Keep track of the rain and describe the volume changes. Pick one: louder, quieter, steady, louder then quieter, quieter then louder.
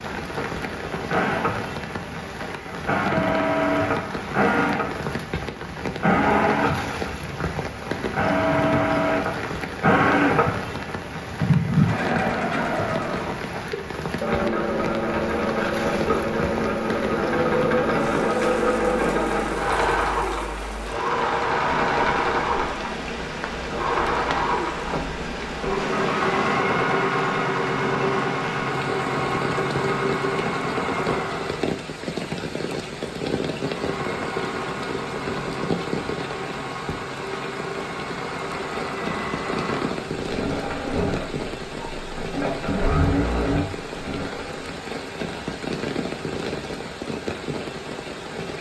steady.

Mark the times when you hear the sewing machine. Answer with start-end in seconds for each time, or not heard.
0.1-31.7, 33.5-44.8.